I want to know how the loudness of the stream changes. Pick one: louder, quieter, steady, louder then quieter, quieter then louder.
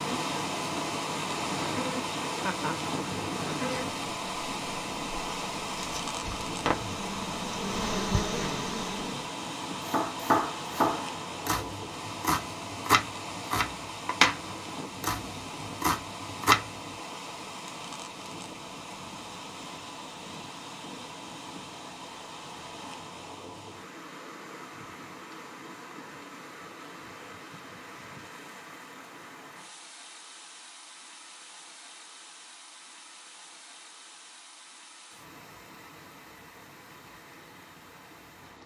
quieter.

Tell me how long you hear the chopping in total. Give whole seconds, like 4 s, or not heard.
7 s.